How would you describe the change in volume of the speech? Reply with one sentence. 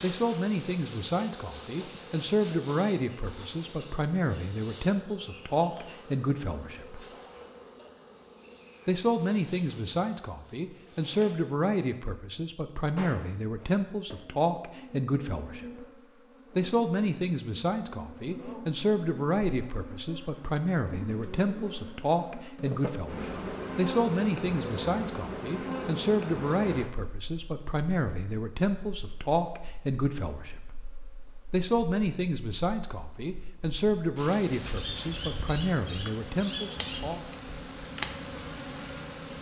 The volume of the speech stays about the same.